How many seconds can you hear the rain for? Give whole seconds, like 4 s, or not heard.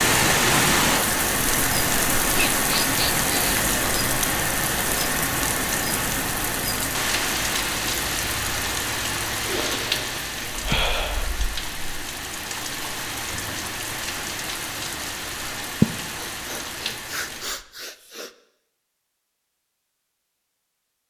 18 s.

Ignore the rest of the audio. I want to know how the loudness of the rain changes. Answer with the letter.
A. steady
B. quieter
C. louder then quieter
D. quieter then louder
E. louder
B.